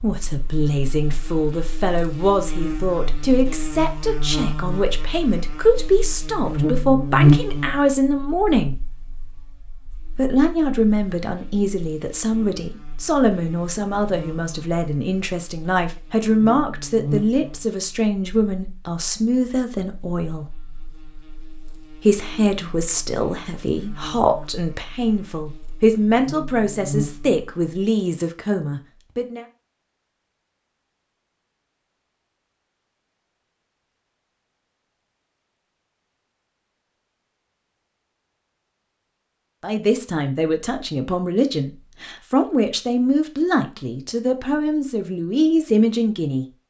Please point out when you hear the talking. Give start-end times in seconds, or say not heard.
0.0-8.8, 10.1-20.4, 22.0-29.4, 39.6-46.5.